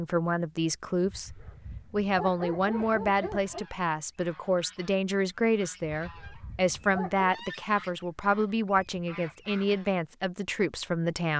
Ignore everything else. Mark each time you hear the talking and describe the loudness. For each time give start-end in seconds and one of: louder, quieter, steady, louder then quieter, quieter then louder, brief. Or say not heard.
0.0-11.3 steady.